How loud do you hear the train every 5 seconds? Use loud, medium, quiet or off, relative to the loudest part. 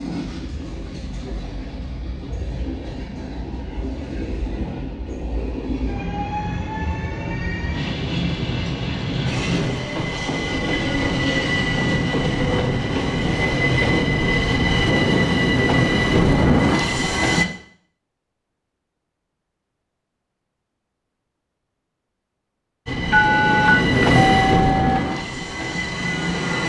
quiet, medium, loud, loud, loud, medium.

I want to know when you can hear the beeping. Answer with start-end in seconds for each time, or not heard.
23.1-25.0.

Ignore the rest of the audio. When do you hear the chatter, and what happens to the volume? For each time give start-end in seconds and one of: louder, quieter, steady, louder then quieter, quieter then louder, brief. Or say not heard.
not heard.